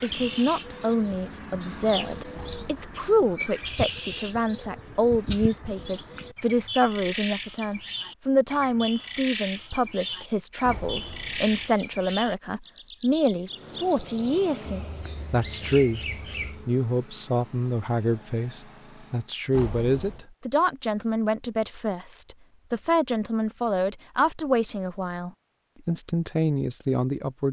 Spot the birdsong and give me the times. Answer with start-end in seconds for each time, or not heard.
0.0-16.6.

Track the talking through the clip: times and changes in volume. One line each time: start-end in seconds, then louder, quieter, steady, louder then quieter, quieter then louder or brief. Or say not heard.
0.0-16.0 steady
16.6-27.4 steady.